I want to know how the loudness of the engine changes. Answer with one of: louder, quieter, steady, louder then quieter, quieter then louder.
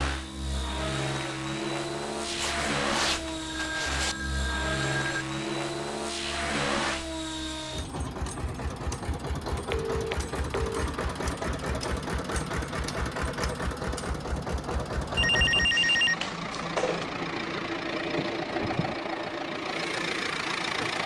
steady.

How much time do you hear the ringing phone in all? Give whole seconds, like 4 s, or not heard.
5 s.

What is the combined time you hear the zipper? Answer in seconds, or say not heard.
2 s.